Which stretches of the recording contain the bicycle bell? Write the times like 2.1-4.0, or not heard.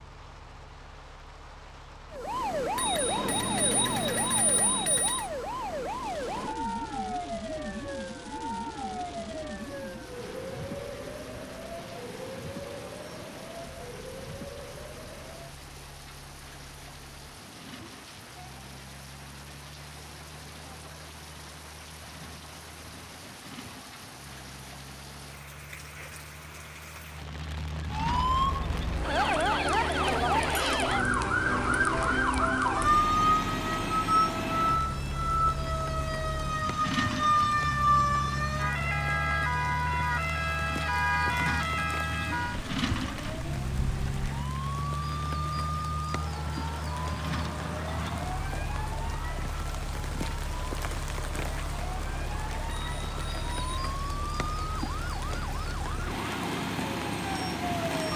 2.8-5.3, 52.6-53.8.